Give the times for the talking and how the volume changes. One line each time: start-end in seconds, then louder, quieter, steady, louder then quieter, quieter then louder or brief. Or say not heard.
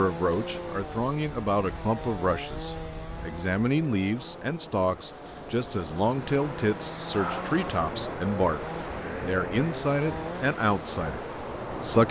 0.0-12.0 steady.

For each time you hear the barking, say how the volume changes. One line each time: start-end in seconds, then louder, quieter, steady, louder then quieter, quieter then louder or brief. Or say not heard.
not heard.